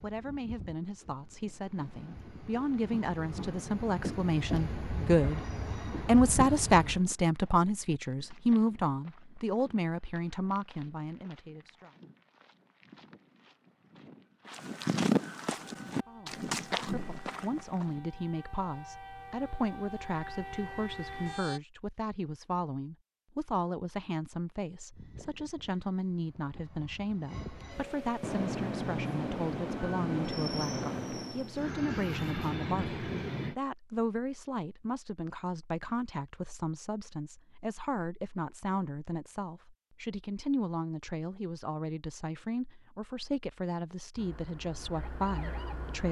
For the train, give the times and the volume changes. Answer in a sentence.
The train can be heard from 0.0 to 7.0 s, getting louder; and from 24.9 to 33.5 s, getting louder.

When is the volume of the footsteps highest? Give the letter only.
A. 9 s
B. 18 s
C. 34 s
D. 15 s
D.